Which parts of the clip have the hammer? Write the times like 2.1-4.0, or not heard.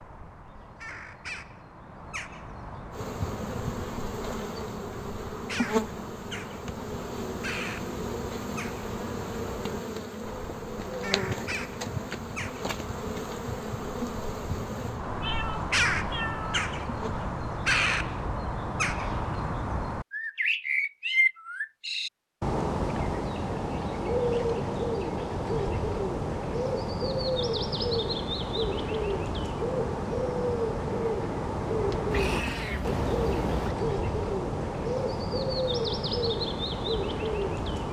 not heard.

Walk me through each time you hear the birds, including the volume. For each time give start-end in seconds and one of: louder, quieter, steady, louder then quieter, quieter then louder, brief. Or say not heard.
0.0-37.8 louder.